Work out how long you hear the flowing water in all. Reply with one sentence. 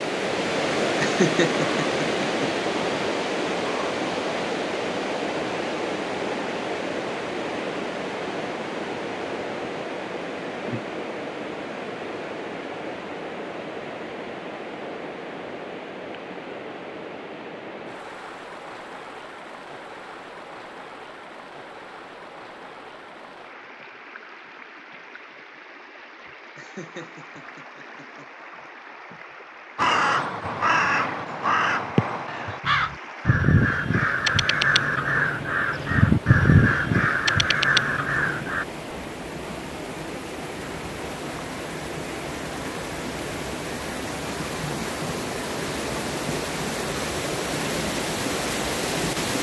You can hear the flowing water for 49 seconds altogether.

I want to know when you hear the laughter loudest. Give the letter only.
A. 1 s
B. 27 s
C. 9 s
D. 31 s
A.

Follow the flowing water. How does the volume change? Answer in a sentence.
The volume of the flowing water goes down, then up.